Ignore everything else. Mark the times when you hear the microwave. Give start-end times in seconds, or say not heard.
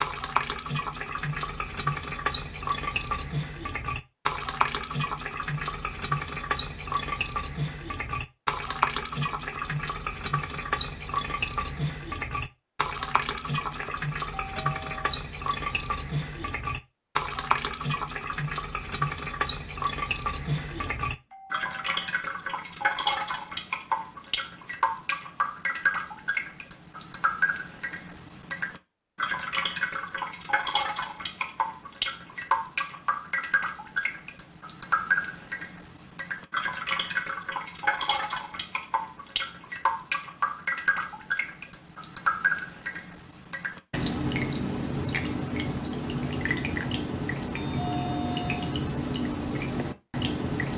not heard.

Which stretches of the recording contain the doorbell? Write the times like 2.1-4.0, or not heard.
13.7-15.2, 20.7-22.1, 47.5-48.6.